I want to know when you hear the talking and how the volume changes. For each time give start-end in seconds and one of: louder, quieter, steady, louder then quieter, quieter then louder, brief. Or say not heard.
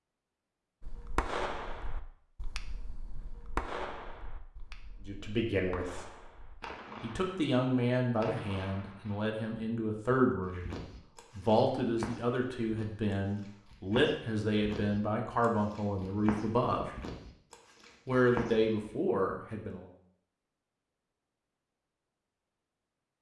5.0-6.1 brief
7.0-16.9 steady
18.1-19.9 brief.